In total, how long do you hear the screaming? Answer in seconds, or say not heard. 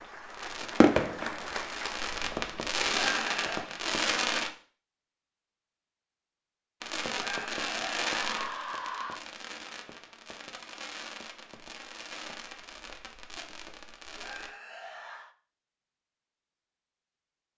4 s.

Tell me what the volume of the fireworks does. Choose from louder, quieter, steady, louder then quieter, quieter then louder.
quieter.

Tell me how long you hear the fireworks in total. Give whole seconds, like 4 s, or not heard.
12 s.